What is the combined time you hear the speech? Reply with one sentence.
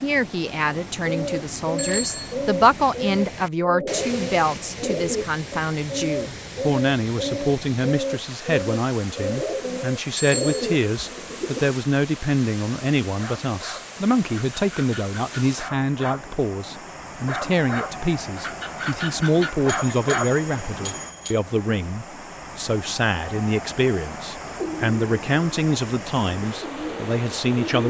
The speech can be heard for 28 seconds in total.